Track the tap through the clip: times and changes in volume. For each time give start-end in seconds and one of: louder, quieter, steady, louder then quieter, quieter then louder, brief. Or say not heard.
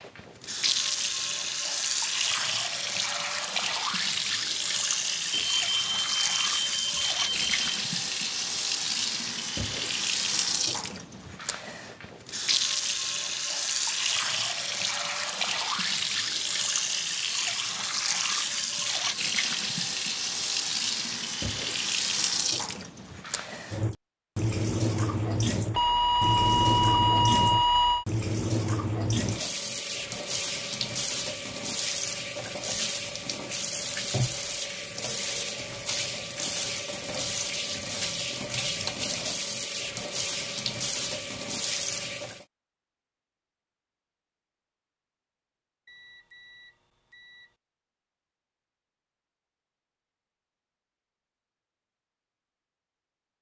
0.0-42.5 steady.